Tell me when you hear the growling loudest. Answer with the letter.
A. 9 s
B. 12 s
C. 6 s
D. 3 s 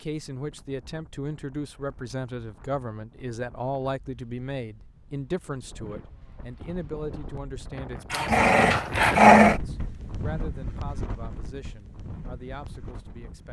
A.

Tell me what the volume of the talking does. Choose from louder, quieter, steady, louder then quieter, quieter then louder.
quieter.